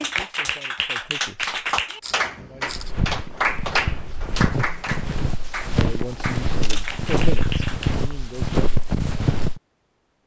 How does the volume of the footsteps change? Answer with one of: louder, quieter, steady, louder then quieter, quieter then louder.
louder.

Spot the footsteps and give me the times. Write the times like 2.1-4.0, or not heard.
2.6-9.6.